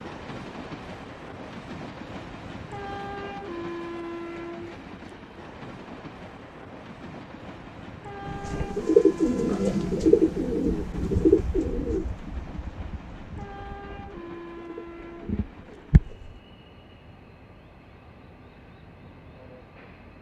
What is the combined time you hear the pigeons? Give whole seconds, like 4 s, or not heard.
8 s.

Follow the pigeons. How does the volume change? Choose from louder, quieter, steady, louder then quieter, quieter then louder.
quieter then louder.